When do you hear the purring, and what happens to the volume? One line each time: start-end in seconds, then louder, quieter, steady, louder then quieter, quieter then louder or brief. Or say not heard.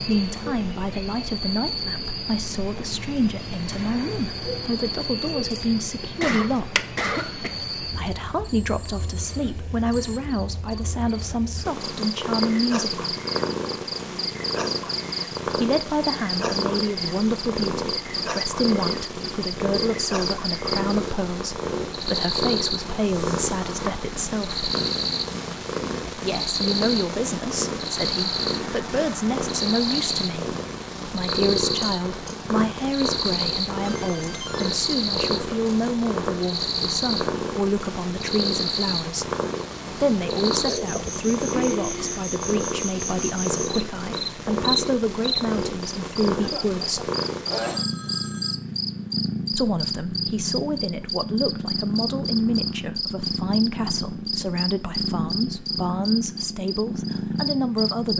11.6-58.1 steady.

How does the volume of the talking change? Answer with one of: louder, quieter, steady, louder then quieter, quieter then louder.
steady.